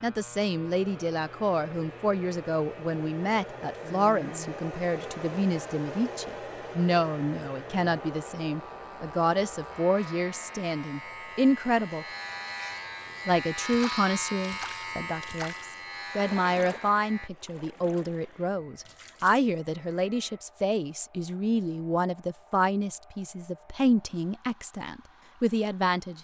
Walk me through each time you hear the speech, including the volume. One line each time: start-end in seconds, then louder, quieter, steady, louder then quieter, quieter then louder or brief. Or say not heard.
0.0-12.1 steady
13.2-26.1 steady.